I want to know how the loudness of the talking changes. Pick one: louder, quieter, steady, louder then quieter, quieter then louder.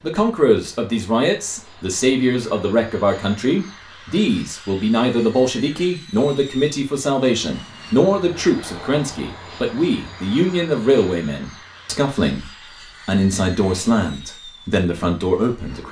steady.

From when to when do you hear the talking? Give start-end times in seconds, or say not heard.
0.0-15.8.